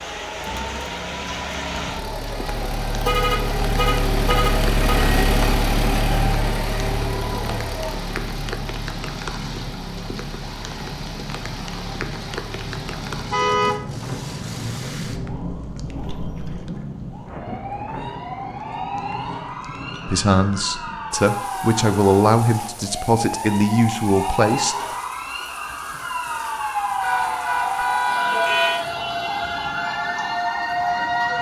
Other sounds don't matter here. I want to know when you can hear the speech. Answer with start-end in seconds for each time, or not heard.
20.1-24.9.